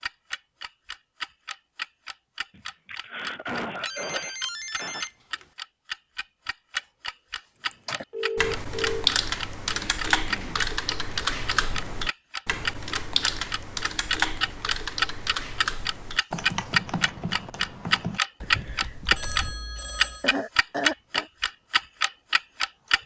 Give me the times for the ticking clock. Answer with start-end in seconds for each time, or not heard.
0.0-23.0.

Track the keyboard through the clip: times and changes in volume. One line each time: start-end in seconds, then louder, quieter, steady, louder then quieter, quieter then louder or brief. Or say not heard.
7.7-19.6 quieter.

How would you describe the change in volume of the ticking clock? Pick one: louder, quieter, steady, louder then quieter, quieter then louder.
louder.